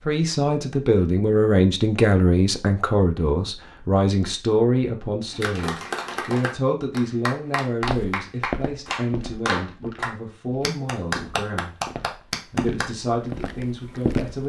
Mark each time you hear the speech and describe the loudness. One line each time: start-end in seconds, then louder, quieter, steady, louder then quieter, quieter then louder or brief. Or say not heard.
0.1-11.8 quieter
12.4-14.4 brief.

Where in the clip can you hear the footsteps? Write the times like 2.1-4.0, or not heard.
7.8-14.4.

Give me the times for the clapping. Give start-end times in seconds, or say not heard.
5.3-12.8.